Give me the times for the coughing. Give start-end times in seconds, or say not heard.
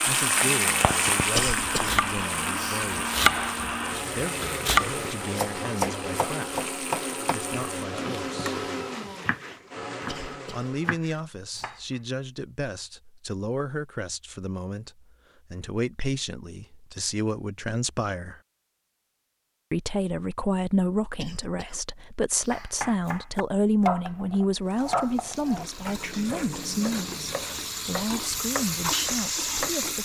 1.4-2.9, 10.1-10.7, 21.1-22.7.